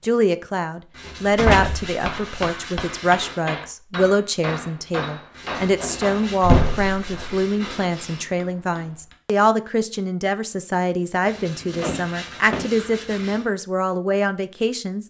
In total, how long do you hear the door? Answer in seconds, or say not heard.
3 s.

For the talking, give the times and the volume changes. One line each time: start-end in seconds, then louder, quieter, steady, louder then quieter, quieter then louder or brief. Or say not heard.
0.0-15.0 steady.